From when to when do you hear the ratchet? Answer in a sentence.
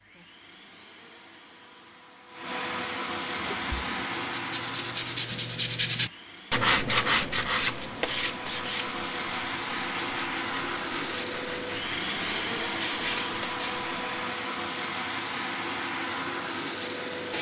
The ratchet can't be heard in this clip.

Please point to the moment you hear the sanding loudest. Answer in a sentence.
The loudest moment of the sanding is at 7 seconds.